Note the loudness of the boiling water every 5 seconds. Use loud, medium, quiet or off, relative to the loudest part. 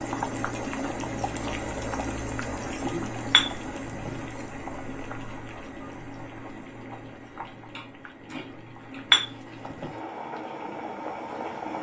loud, medium, loud.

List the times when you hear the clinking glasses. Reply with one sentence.
The clinking glasses can be heard from 3.3 to 4.1 s and from 9.1 to 9.9 s.